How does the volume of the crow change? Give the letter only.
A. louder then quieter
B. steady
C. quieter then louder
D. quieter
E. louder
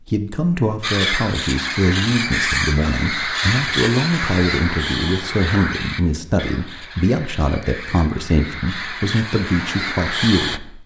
C.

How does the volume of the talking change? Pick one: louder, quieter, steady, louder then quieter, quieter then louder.
steady.